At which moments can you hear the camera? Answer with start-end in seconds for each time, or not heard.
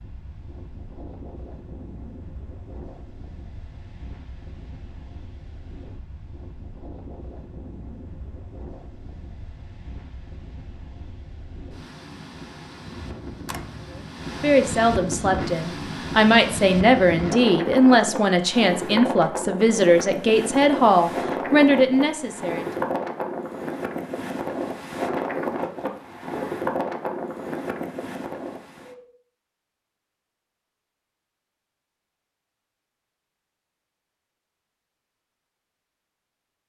12.9-14.1.